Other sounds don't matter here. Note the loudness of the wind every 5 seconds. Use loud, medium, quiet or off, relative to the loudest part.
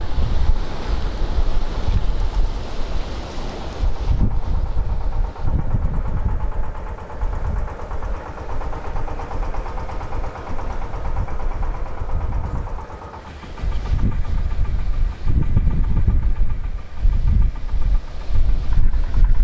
loud, medium, medium, loud.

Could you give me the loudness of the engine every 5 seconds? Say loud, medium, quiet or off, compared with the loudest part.
medium, loud, loud, medium.